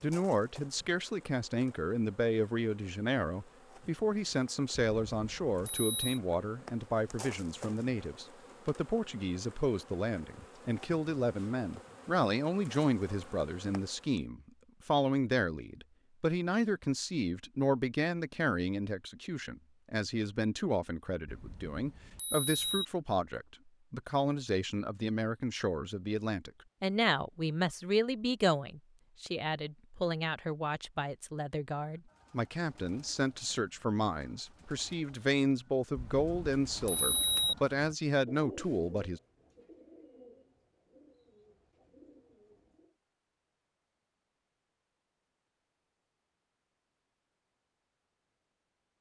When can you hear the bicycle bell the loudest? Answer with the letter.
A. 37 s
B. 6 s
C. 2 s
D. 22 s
A.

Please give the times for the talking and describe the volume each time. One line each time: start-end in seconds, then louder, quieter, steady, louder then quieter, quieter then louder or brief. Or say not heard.
0.0-39.2 steady.